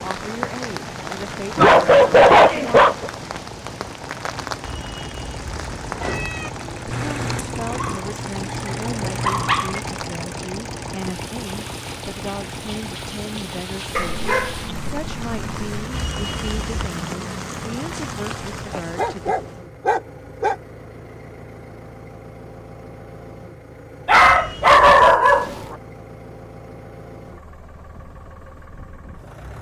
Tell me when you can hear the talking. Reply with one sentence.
You can hear the talking from 0.0 to 2.8 s and from 6.9 to 19.4 s.